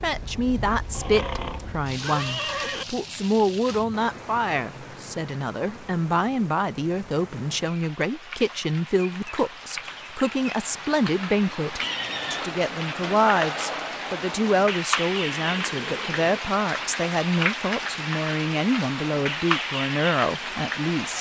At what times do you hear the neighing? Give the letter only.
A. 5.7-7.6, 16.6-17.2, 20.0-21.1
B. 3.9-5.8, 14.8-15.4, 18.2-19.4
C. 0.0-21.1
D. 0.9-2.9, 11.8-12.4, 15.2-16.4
D.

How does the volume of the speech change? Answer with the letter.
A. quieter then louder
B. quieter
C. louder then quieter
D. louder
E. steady
E.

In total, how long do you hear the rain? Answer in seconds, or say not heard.
21 s.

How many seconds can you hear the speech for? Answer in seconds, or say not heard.
21 s.